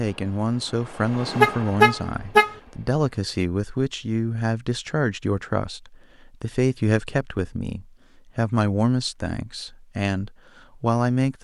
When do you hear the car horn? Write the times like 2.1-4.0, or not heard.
1.4-2.5.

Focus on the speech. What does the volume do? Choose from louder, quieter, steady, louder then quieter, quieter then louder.
steady.